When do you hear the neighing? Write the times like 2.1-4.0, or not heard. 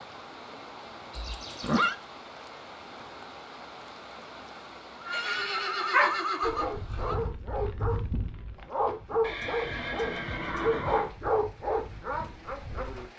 1.1-1.9, 5.0-7.2, 9.2-11.1.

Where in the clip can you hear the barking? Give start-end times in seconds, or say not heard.
5.1-13.1.